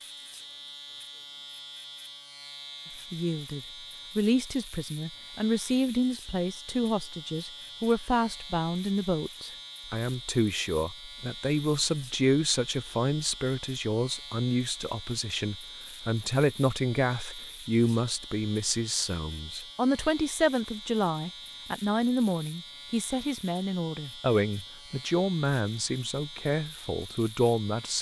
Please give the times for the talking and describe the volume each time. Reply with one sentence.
The talking can be heard from 3.1 to 27.9 s, at a steady volume.